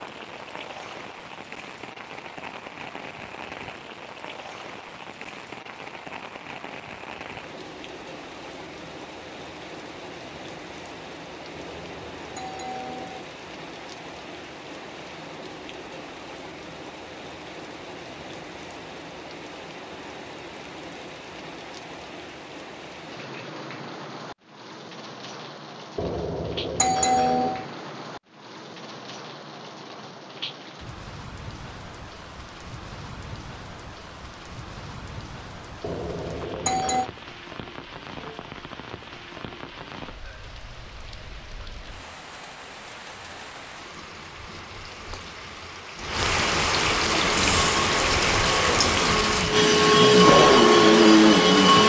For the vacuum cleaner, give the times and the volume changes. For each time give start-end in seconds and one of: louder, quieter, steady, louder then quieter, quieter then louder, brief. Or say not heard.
47.0-51.8 louder.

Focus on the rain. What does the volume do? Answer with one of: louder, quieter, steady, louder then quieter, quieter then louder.
louder.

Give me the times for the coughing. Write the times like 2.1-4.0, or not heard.
not heard.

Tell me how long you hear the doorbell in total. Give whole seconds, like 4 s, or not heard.
5 s.